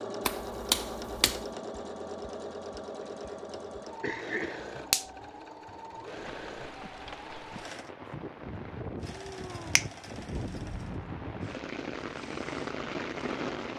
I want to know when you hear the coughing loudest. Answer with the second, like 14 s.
4 s.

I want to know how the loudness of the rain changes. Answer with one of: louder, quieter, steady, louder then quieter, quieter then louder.
louder.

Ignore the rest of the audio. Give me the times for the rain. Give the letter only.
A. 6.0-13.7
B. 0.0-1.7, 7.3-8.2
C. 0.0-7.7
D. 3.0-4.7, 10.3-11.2
A.